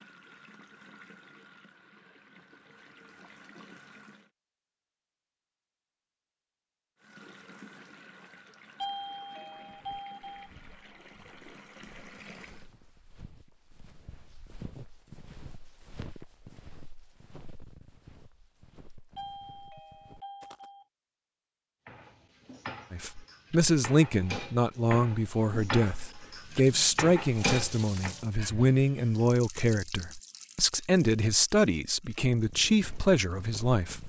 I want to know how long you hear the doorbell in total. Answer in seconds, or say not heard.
4 s.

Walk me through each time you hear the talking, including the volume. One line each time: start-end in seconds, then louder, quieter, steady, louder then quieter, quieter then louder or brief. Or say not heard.
22.9-34.0 steady.